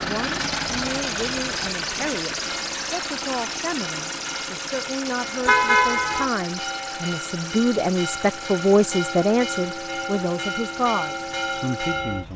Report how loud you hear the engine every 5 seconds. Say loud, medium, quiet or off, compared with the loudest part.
loud, medium, quiet.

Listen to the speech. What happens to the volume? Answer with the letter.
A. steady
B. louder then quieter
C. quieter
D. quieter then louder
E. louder
B.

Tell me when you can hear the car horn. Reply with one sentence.
You can hear the car horn from 5.5 to 6.3 s.